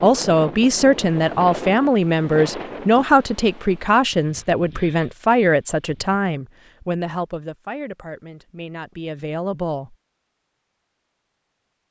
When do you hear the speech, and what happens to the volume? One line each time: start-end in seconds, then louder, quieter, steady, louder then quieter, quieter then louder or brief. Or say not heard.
0.0-9.9 quieter.